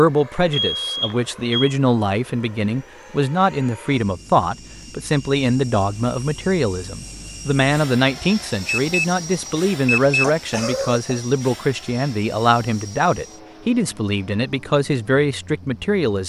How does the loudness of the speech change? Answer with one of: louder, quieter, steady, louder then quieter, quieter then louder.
steady.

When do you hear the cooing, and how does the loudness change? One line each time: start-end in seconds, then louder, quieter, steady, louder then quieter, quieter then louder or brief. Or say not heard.
not heard.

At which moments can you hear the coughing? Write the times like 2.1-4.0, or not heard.
10.2-11.2.